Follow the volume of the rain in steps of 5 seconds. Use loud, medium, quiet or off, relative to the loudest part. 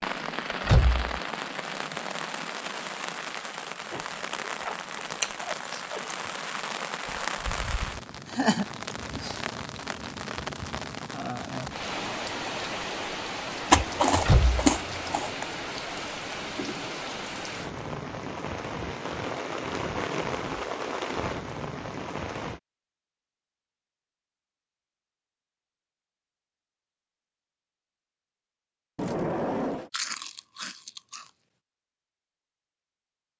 loud, loud, loud, loud, loud, off, off.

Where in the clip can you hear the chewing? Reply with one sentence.
You can hear the chewing from 3.9 to 6.2 s, from 13.7 to 15.4 s and from 29.9 to 31.3 s.